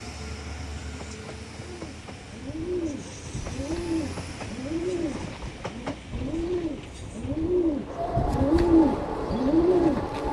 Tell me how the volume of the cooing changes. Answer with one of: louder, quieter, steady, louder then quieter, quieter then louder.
louder.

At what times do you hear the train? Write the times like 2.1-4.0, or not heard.
0.0-10.2.